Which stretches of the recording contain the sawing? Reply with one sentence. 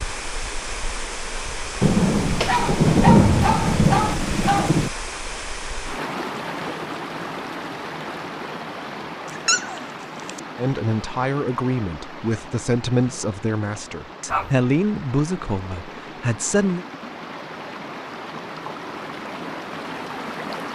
The sawing can't be heard in this clip.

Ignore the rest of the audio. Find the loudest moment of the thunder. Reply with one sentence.
The volume of the thunder peaks at 3 seconds.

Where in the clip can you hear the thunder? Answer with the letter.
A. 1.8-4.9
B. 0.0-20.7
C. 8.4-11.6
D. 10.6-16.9
A.